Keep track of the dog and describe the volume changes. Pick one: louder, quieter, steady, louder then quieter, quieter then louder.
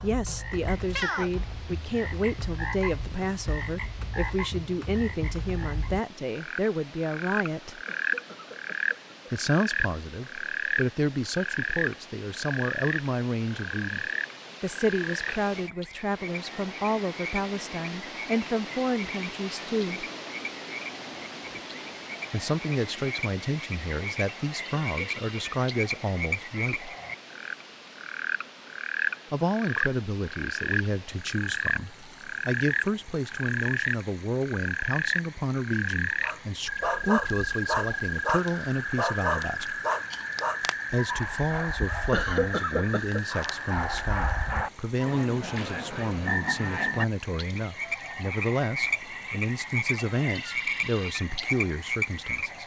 quieter then louder.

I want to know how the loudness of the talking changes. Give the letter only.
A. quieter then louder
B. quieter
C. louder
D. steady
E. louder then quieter
D.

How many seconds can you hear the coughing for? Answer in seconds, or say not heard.
3 s.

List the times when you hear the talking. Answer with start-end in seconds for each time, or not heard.
0.0-7.8, 9.3-20.1, 22.3-26.9, 29.3-39.8, 40.9-52.6.